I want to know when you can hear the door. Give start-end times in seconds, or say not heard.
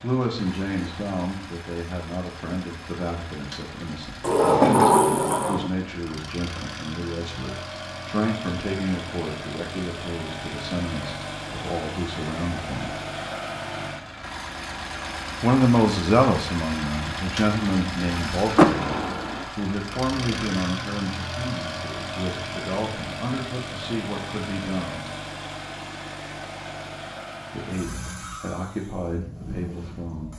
4.2-5.7, 18.6-19.4.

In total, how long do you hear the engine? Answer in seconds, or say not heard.
30 s.